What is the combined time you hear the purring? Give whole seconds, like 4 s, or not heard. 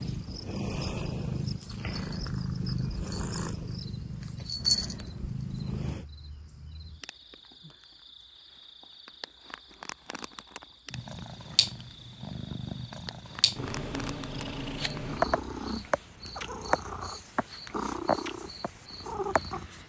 15 s.